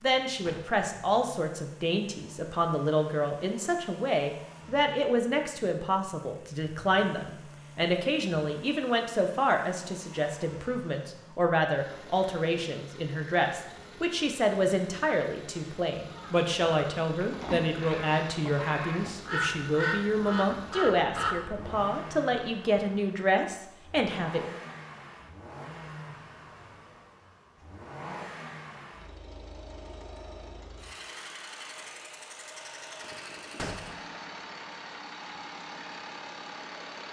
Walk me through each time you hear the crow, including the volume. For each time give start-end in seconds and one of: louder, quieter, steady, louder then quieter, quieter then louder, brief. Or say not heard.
16.1-21.9 louder.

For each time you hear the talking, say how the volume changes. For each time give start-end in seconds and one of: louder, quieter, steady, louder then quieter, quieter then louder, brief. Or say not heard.
0.0-24.6 steady.